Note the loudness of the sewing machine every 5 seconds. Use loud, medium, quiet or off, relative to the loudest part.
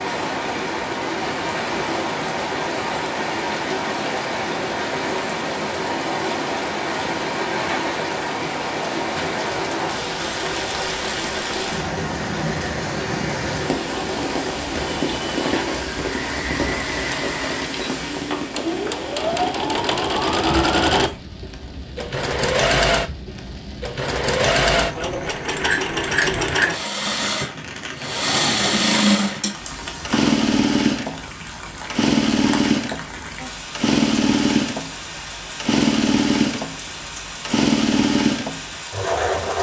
medium, medium, medium, medium, loud, loud, loud, loud.